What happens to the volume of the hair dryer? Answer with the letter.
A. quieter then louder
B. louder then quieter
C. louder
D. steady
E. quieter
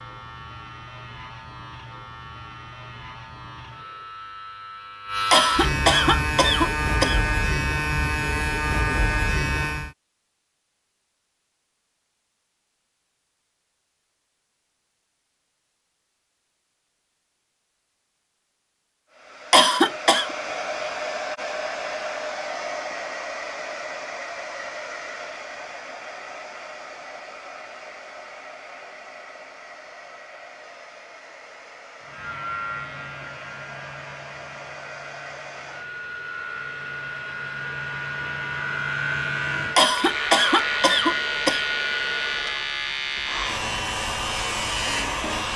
A.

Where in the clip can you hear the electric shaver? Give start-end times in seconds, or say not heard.
0.0-9.9, 32.0-45.5.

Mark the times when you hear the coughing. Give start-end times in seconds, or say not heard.
5.3-7.2, 19.5-20.3, 39.8-41.6.